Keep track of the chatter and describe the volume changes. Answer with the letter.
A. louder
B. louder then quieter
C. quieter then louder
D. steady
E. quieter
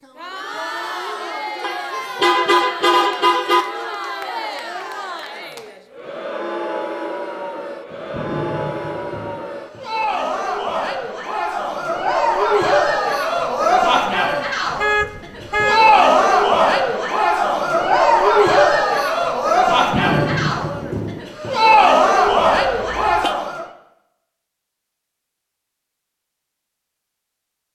A.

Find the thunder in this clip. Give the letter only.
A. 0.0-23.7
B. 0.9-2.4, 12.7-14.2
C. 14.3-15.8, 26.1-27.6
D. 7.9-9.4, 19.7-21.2
D.